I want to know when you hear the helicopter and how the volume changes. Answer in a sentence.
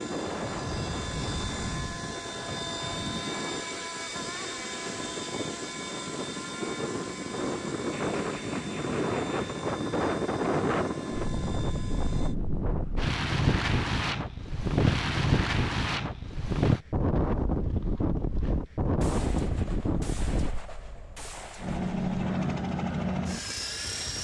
The helicopter can be heard from 0.0 to 12.3 s, getting quieter; and briefly from 21.6 to 24.1 s.